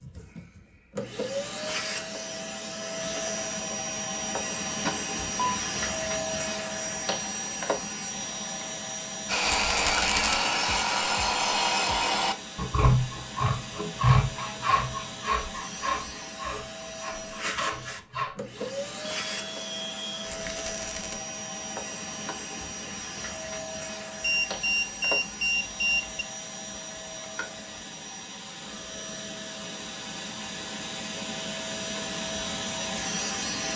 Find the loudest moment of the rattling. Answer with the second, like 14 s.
10 s.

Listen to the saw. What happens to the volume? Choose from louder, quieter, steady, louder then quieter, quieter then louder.
quieter.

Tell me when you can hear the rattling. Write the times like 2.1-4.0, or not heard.
9.4-10.4, 20.2-21.2.